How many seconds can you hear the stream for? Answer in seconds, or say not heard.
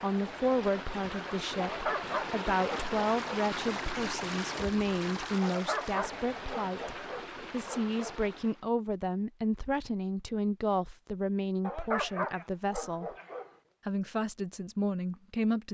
9 s.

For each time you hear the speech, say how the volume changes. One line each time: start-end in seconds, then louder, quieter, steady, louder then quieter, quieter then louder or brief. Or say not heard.
0.0-13.2 steady
13.8-15.6 brief.